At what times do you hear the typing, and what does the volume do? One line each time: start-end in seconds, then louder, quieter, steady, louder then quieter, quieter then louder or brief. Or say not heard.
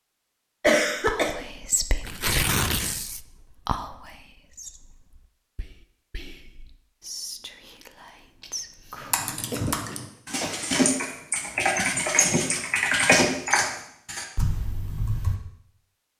9.1-15.4 louder then quieter.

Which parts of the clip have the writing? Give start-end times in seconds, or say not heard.
not heard.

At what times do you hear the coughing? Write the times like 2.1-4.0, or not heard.
0.6-1.4, 8.4-10.7.